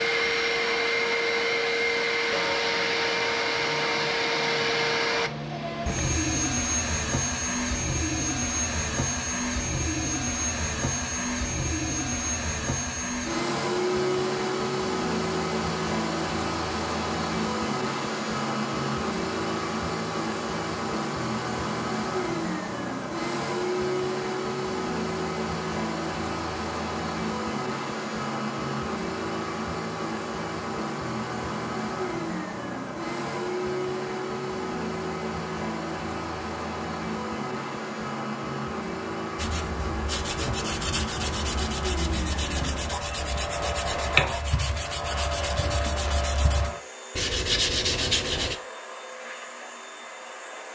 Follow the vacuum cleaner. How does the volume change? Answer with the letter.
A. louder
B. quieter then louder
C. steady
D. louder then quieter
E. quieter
E.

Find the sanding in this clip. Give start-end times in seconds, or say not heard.
39.4-48.5.